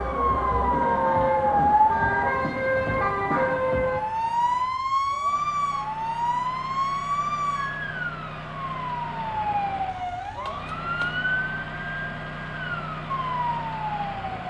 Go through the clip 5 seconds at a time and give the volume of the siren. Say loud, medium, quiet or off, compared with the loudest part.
loud, medium, medium.